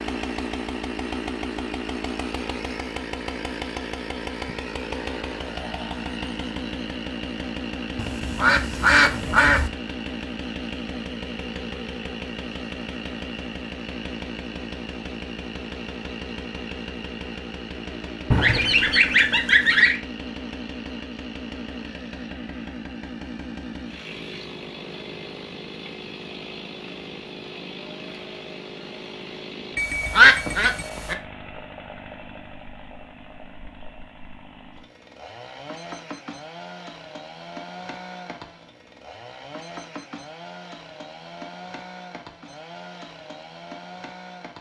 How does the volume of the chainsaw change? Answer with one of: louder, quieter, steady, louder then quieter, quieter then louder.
quieter.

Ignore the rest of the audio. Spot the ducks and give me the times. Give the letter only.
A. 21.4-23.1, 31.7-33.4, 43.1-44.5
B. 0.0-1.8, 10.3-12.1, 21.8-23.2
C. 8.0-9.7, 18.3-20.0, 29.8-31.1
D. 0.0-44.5
C.